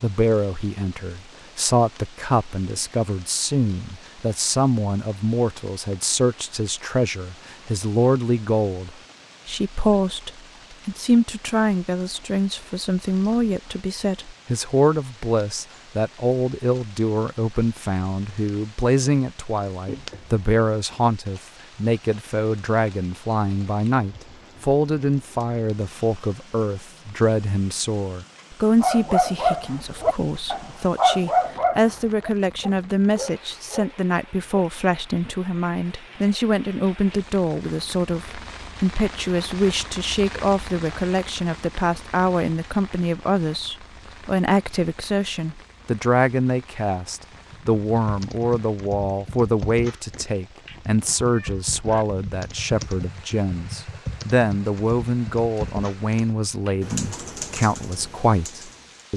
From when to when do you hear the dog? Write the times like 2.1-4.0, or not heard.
28.8-34.4.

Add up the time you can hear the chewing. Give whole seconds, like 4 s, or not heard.
not heard.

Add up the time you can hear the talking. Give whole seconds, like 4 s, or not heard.
59 s.